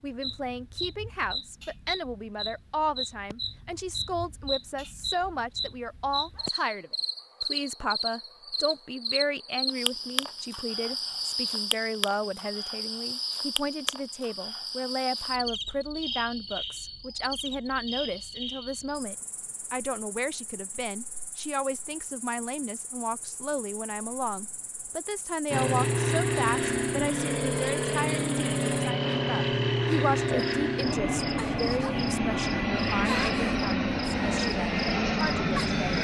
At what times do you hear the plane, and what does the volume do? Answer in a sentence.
The plane can be heard from 25.5 to 35.9 s, at a steady volume.